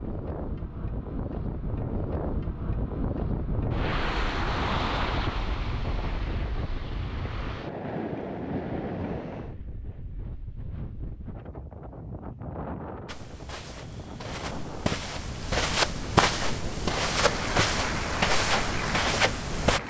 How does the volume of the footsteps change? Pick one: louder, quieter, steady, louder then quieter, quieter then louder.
louder.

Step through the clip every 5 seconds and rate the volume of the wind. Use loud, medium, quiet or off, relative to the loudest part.
loud, loud, medium, medium.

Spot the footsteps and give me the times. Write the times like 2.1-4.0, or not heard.
13.1-19.8.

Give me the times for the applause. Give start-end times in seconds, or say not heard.
17.1-19.8.